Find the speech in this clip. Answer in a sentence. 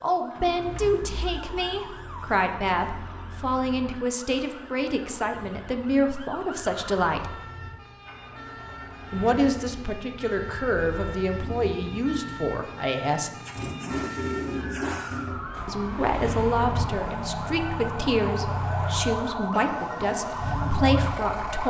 The speech can be heard from 0.0 to 7.3 s, from 9.1 to 13.3 s and from 15.7 to 21.6 s.